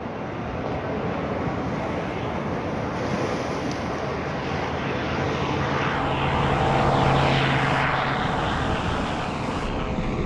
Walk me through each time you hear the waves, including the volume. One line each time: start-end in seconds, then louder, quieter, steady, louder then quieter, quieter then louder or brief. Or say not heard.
0.0-10.2 steady.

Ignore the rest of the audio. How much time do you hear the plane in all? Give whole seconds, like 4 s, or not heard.
10 s.